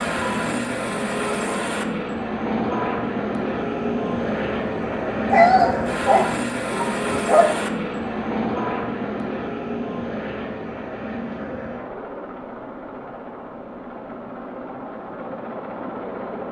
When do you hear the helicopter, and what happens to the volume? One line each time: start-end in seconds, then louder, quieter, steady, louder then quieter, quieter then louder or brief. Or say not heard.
0.0-16.4 quieter.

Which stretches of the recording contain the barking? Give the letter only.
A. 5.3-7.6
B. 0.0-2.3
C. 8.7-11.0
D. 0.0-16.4
A.